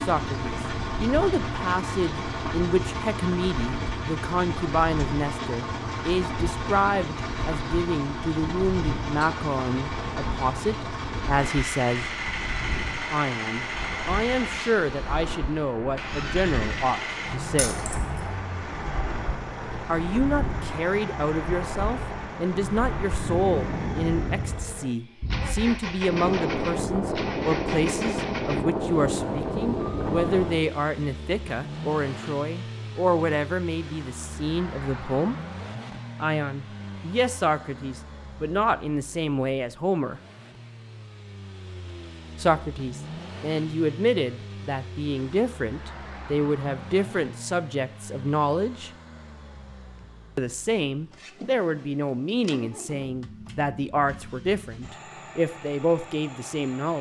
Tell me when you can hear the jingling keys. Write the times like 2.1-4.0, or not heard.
17.6-18.1.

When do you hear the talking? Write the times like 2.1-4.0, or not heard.
0.0-12.1, 13.1-17.9, 19.9-35.4, 36.2-40.2, 42.4-48.9, 50.4-56.9.